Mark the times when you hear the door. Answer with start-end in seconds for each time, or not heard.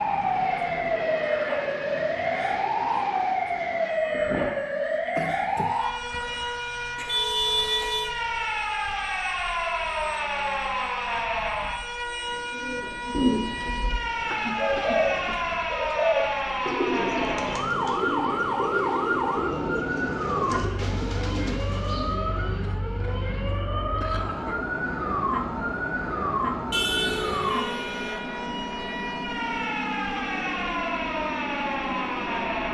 not heard.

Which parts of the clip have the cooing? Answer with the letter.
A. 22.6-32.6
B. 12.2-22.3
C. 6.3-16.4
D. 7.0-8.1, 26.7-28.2
B.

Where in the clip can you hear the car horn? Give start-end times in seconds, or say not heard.
7.0-8.1, 26.7-28.2.